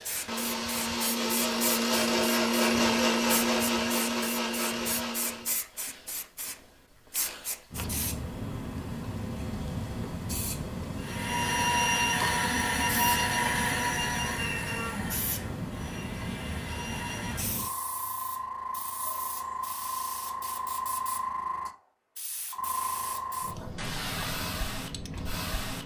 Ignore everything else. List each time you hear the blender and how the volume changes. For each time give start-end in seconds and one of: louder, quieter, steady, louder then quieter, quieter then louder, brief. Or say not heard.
0.0-5.6 louder then quieter
10.9-17.6 quieter.